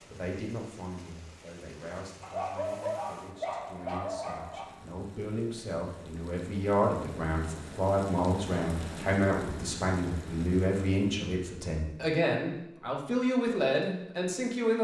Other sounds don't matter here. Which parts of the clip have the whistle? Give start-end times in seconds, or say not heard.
not heard.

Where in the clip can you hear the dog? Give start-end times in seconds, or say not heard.
2.2-4.7.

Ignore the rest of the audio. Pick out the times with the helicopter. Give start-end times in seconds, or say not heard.
not heard.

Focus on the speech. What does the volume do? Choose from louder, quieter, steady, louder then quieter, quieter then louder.
louder.